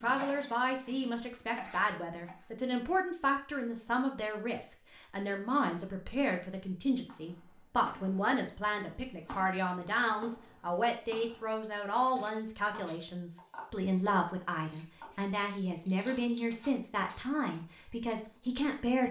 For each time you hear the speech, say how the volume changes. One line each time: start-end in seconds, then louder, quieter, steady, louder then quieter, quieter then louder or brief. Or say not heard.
0.0-19.0 steady.